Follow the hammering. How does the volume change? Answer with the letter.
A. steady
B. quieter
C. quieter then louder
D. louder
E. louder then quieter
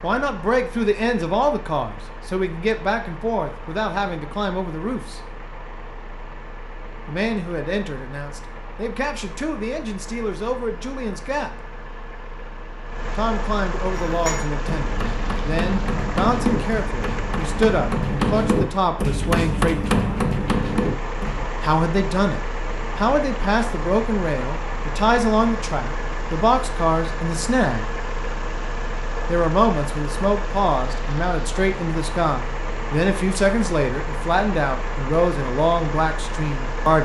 D.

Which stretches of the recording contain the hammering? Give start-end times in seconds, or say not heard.
13.9-21.5.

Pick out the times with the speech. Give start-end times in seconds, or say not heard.
0.0-5.2, 7.0-11.7, 13.2-20.1, 21.6-27.9, 29.2-37.0.